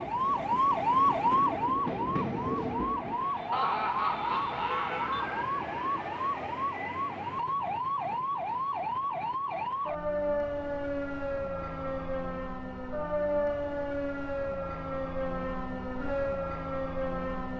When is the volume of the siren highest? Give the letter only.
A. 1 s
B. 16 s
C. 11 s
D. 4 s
A.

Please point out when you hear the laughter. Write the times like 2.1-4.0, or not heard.
3.5-5.4.